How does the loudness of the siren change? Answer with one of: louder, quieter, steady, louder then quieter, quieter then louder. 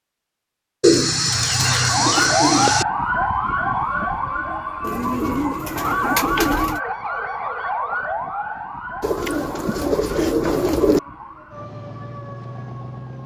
quieter.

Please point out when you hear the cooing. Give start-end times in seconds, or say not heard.
0.8-2.9, 4.8-6.8, 9.0-11.0.